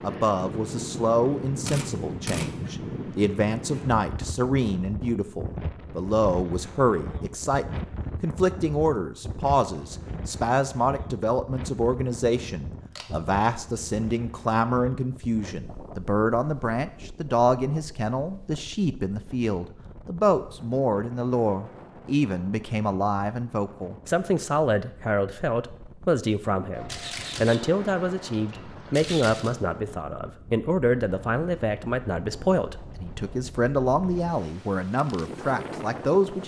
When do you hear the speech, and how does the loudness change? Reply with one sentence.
The speech can be heard from 0.0 to 36.4 s, at a steady volume.